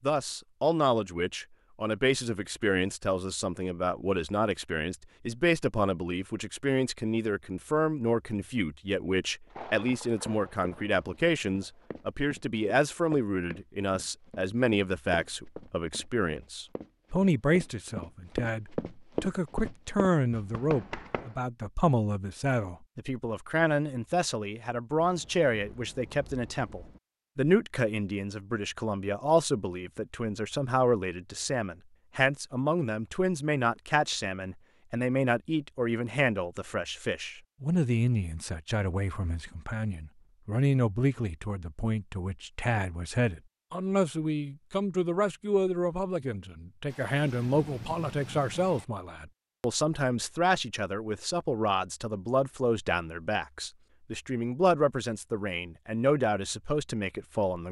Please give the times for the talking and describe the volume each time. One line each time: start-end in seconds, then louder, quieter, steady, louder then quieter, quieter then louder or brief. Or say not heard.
0.0-57.6 steady.